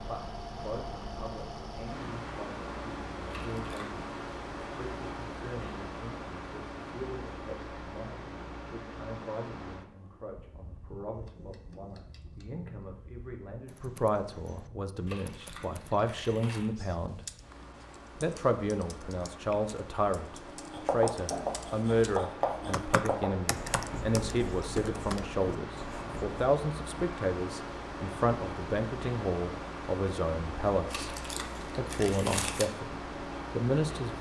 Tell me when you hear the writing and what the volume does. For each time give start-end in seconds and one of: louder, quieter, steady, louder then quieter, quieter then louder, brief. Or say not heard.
20.6-26.4 quieter.